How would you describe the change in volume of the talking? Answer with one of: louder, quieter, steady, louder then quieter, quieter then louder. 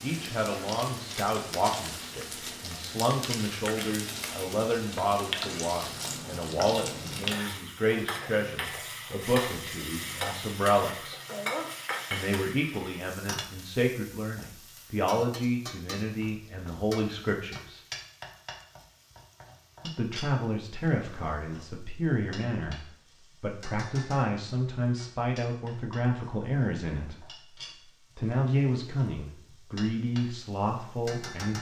steady.